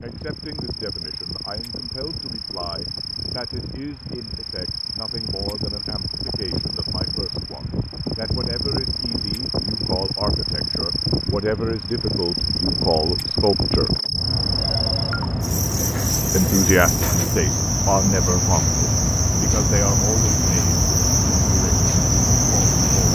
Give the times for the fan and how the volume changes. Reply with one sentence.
You can hear the fan from 0.0 to 23.1 s, getting louder.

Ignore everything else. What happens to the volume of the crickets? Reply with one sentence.
The volume of the crickets goes up.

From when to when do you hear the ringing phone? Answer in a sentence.
The ringing phone can be heard from 14.6 to 15.4 s.